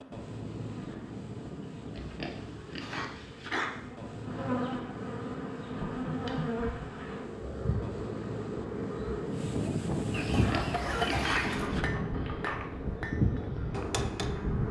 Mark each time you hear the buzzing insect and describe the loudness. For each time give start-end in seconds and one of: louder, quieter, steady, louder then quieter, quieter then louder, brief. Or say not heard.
0.0-14.6 louder.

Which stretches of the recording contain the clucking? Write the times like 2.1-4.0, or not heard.
10.1-11.7.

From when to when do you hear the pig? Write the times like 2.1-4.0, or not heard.
1.9-3.7, 10.3-11.9.